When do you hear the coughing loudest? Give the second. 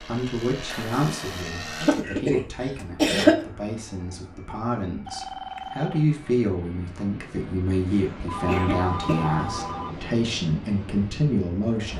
3 s.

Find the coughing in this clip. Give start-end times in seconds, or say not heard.
1.8-3.5, 7.8-9.3.